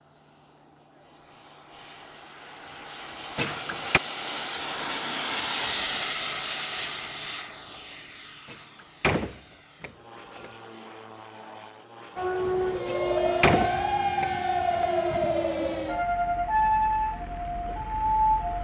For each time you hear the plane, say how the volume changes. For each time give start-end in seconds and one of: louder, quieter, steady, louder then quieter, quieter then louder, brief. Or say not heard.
0.0-18.6 louder then quieter.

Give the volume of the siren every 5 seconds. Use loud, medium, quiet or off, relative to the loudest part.
off, off, loud, loud.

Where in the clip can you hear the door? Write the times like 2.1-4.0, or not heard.
3.4-4.0, 8.4-10.5, 12.8-15.2.